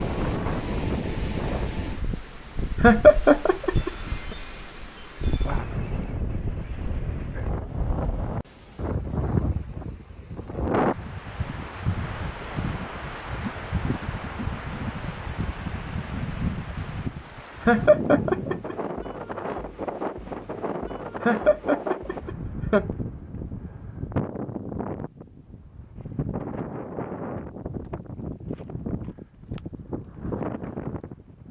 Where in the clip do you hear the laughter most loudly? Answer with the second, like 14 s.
3 s.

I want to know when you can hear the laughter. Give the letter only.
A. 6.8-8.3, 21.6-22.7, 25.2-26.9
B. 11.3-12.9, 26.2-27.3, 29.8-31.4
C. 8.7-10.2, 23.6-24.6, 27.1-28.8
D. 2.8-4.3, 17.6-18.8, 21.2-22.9
D.